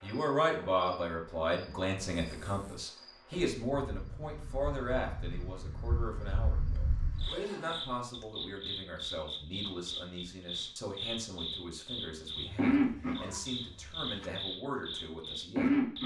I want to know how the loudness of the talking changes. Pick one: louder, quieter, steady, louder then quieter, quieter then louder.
quieter.